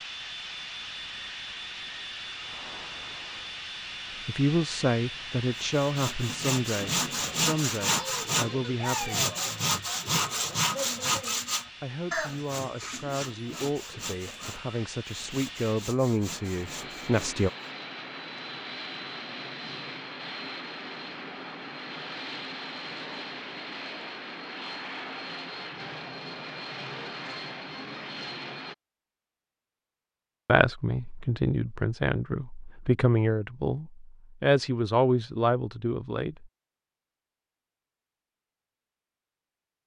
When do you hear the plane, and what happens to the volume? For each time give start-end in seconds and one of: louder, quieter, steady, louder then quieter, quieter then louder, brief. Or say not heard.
0.0-28.8 quieter then louder.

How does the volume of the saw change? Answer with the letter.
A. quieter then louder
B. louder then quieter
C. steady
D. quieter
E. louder
D.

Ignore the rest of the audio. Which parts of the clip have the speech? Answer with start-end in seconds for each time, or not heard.
4.2-9.2, 11.8-17.5, 30.4-36.5.